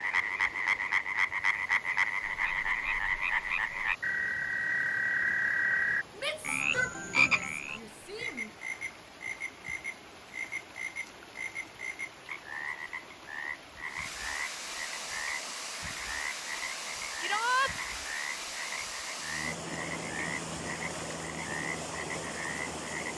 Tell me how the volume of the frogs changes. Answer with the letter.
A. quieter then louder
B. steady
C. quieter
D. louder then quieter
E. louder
C.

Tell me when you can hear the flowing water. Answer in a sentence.
You can hear the flowing water from 0.0 to 23.1 s.